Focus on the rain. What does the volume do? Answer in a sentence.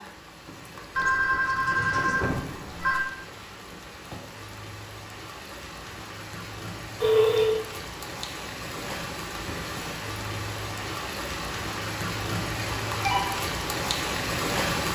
The loudness of the rain goes up.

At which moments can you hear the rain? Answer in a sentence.
The rain can be heard from 0.0 to 14.8 s.